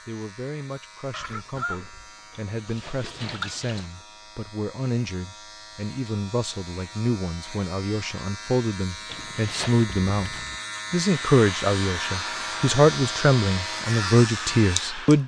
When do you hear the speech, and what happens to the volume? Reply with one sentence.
The speech can be heard from 0.1 to 15.2 s, getting louder.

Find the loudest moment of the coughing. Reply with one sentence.
The loudest moment of the coughing is at 2 seconds.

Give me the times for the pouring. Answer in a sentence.
The pouring can be heard from 2.3 to 3.9 s and from 9.1 to 9.9 s.